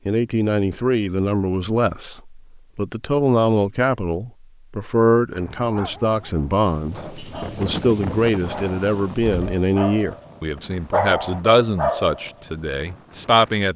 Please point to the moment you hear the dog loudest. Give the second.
11 s.